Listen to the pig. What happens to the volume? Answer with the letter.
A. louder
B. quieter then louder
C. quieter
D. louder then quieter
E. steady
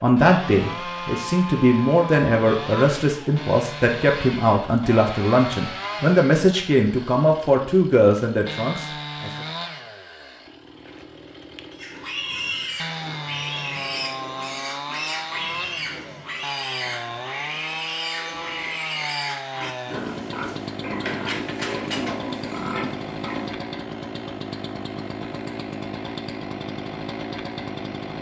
E.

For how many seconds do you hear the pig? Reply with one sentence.
You can hear the pig for 12 seconds altogether.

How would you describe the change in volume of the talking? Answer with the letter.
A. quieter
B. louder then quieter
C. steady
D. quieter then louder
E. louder
C.